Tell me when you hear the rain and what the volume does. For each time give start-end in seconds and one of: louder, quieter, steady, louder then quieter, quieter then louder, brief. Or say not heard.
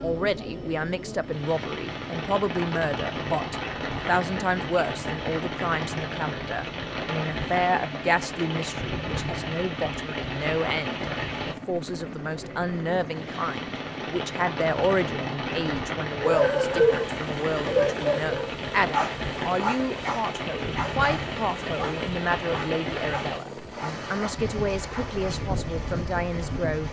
0.0-26.8 steady.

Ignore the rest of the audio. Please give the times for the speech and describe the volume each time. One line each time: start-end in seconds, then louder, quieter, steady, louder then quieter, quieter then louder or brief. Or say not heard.
0.0-26.8 steady.